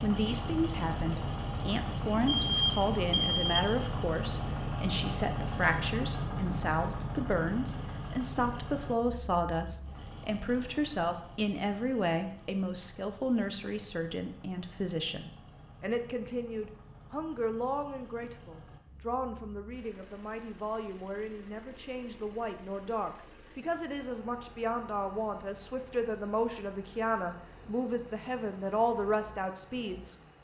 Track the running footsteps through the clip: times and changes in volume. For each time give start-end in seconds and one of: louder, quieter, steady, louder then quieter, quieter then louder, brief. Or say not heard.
not heard.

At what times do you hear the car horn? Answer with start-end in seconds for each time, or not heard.
not heard.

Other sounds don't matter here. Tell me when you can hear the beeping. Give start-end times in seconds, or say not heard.
2.2-3.8.